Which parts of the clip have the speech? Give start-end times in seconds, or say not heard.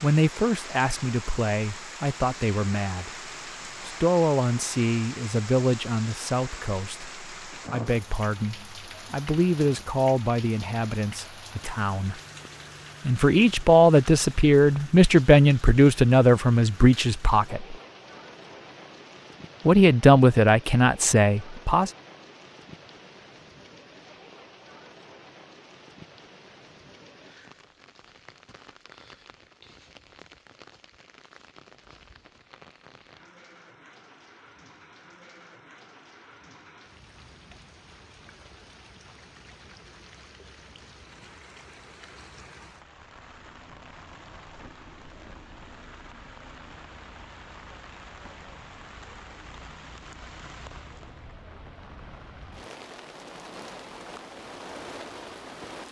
0.0-3.1, 3.8-12.2, 13.1-17.8, 19.6-21.9.